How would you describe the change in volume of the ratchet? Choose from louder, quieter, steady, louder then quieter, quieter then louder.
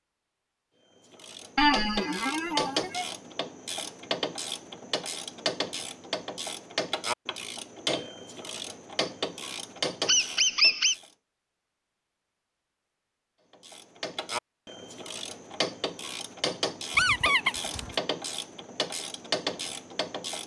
steady.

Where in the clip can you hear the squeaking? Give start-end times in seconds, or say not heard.
1.6-3.0, 10.1-10.9, 16.9-17.9.